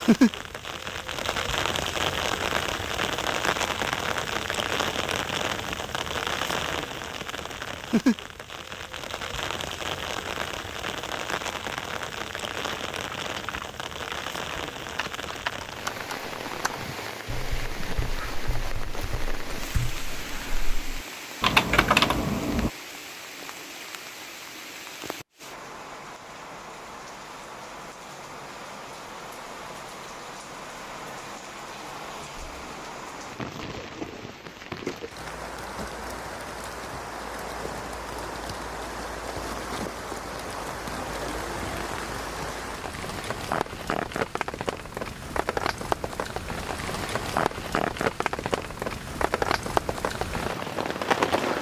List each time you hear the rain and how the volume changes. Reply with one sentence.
You can hear the rain from 0.0 to 51.5 s, getting quieter then louder.